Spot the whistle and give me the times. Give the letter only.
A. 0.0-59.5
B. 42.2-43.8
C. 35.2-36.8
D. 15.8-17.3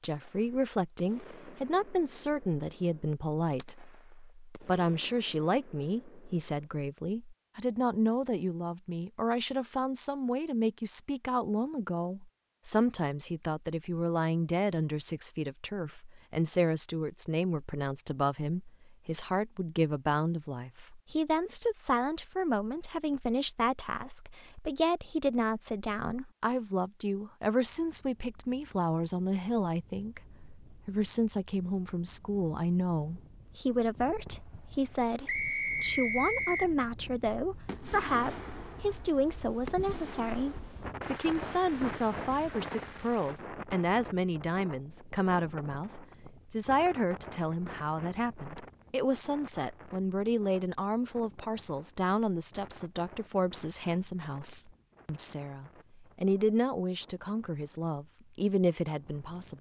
C.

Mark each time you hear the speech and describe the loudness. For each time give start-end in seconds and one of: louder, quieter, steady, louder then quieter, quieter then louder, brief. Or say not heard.
0.0-59.5 steady.